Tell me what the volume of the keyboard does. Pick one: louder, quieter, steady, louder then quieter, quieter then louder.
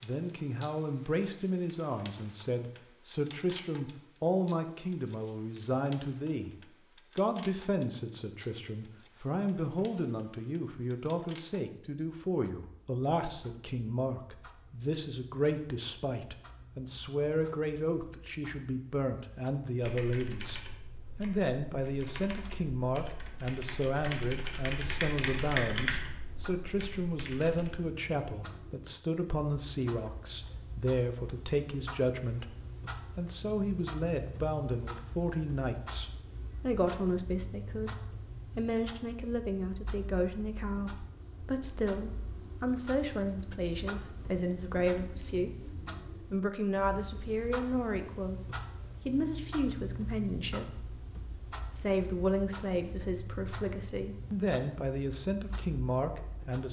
louder then quieter.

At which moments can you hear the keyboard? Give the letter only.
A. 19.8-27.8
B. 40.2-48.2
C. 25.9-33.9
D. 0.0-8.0
A.